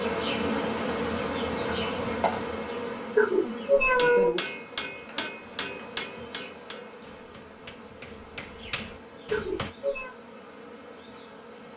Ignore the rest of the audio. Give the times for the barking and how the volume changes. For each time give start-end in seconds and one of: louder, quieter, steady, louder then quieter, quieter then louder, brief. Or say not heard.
not heard.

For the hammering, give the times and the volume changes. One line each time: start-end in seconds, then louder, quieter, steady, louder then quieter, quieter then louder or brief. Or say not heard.
4.0-9.8 quieter then louder.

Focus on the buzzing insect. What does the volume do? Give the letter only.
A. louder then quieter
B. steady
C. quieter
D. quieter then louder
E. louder
C.